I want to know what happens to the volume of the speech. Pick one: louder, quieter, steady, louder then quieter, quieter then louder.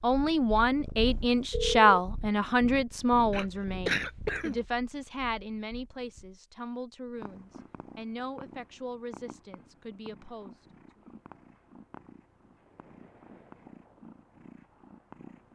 quieter.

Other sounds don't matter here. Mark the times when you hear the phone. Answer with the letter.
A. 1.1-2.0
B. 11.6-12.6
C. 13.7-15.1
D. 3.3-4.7
A.